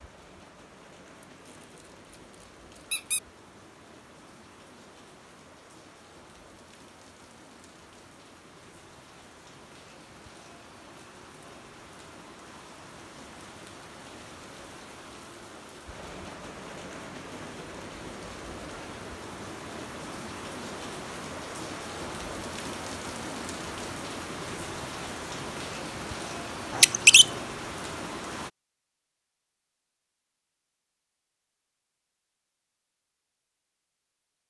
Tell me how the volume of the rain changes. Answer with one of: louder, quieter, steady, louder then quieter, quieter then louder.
louder.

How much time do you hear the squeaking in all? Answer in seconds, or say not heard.
2 s.